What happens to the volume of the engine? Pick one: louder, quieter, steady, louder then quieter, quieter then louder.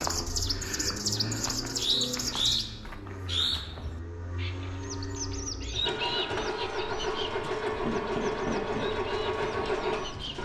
quieter then louder.